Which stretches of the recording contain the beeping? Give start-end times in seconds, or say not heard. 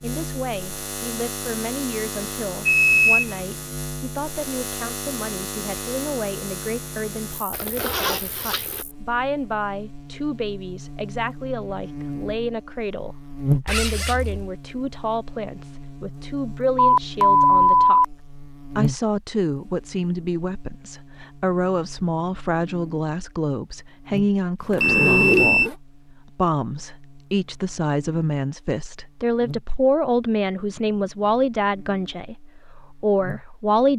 2.6-3.4, 16.8-18.1, 24.8-25.7.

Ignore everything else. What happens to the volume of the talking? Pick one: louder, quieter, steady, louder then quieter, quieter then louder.
louder.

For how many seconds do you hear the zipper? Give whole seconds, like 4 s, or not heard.
3 s.